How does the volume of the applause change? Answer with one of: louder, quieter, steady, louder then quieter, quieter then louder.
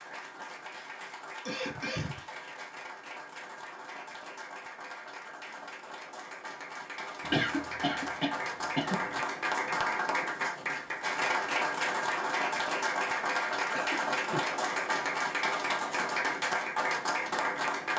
louder.